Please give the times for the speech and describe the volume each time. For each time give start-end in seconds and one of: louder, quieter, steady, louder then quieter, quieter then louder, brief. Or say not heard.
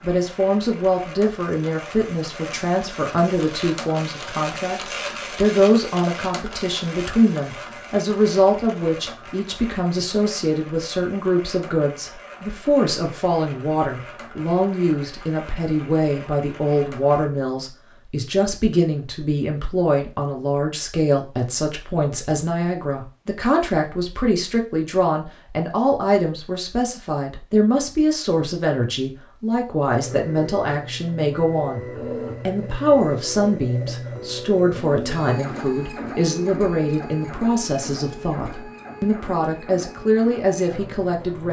0.0-41.4 steady.